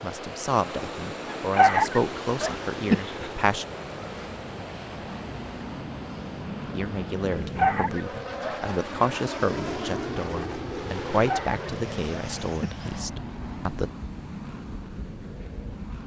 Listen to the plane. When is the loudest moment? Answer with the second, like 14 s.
10 s.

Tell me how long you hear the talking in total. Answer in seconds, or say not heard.
11 s.